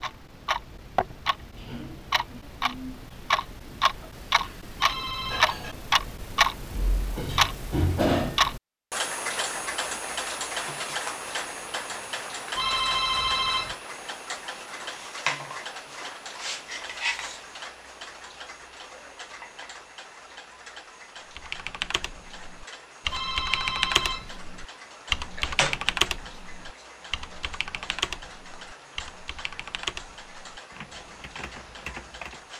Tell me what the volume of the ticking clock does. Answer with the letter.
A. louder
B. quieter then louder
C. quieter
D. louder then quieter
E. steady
C.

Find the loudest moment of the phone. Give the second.
13 s.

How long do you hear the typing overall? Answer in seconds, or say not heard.
11 s.